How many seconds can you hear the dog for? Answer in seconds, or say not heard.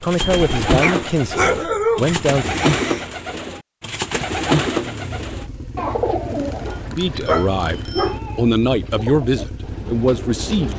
3 s.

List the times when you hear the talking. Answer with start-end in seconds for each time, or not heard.
0.0-2.6, 6.9-10.7.